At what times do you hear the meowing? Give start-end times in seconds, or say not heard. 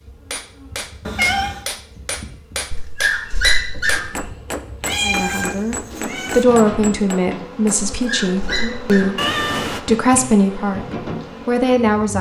1.1-1.6, 4.8-6.5, 9.2-9.8.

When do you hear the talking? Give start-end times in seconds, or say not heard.
5.0-10.8, 11.4-12.1.